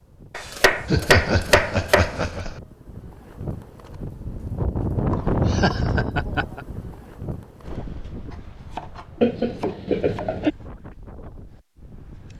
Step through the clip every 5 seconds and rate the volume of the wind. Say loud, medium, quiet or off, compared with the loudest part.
medium, loud, quiet.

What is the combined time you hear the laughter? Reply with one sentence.
The laughter can be heard for 4 seconds in total.